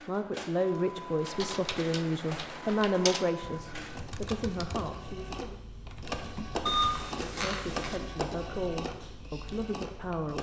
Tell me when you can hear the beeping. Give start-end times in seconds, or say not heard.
6.7-8.0.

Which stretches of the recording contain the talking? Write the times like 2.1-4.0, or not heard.
0.1-5.6, 7.2-10.3.